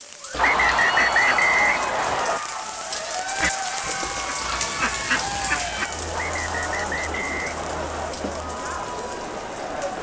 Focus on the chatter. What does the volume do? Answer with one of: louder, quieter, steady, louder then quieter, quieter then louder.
steady.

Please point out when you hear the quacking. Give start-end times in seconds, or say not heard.
0.3-5.9.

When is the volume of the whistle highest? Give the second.
1 s.